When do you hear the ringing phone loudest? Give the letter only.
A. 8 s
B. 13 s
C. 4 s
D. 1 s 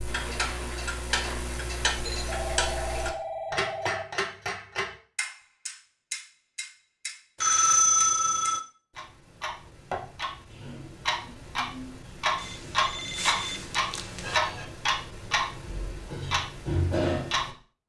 A.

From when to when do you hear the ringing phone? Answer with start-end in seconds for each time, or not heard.
2.0-4.0, 7.4-8.6, 12.3-14.4.